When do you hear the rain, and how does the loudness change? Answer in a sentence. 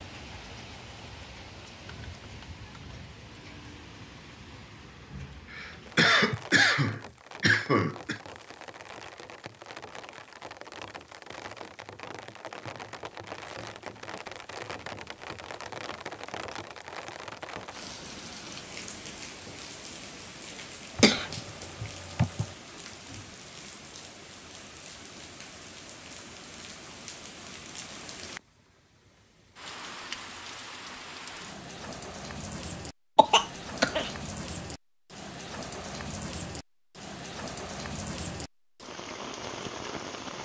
The rain can be heard from 0.0 to 40.4 s, getting louder.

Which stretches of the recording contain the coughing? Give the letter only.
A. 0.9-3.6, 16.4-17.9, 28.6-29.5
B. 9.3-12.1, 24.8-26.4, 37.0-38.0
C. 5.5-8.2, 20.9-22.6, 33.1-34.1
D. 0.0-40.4
C.